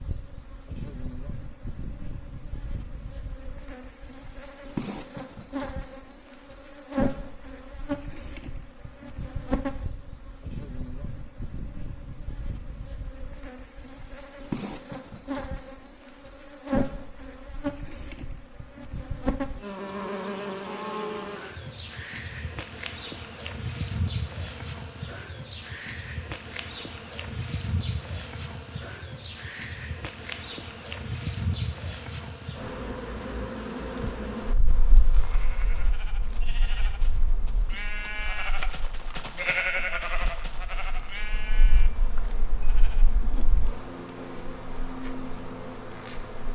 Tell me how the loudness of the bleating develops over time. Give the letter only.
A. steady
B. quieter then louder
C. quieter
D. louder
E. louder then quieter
E.